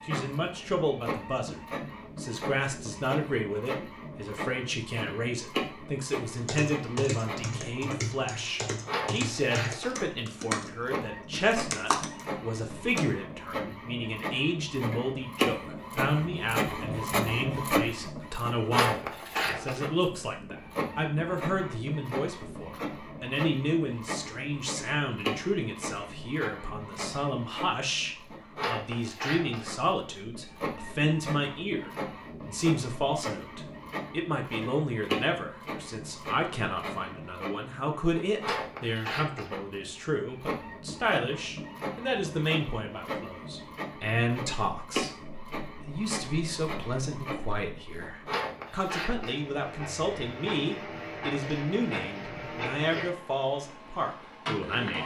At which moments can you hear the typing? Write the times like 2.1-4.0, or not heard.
6.3-10.7, 11.5-13.1.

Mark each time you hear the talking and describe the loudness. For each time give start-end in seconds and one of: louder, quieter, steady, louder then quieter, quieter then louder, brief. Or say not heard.
0.0-55.0 steady.